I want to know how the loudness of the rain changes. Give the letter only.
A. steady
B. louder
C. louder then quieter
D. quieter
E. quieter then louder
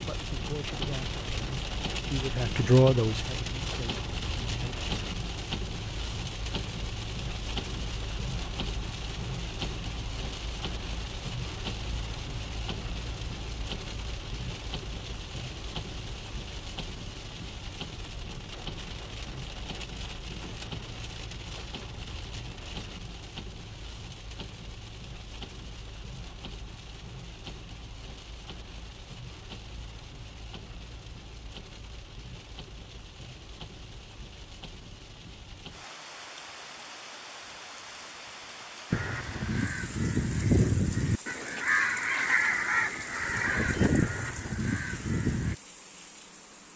D.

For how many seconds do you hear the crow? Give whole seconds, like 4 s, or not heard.
7 s.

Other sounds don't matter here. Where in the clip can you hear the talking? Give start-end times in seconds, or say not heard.
0.0-4.8.